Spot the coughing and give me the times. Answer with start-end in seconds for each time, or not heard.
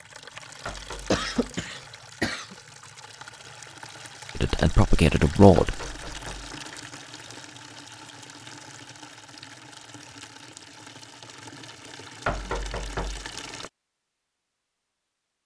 1.1-2.5.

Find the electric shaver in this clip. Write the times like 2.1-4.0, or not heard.
not heard.